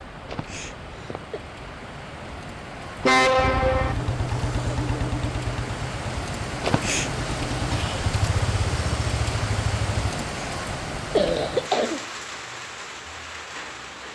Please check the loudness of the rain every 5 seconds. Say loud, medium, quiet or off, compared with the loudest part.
medium, loud, loud.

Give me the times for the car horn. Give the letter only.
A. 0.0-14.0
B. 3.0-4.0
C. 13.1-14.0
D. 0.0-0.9
B.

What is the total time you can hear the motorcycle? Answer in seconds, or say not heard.
7 s.